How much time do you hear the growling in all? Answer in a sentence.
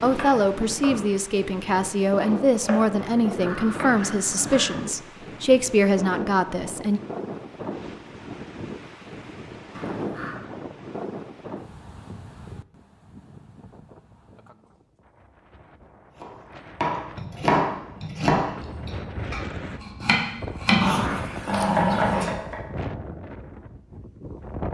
The growling can be heard for 4 seconds in total.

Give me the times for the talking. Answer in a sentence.
The talking can be heard from 0.0 to 7.0 s.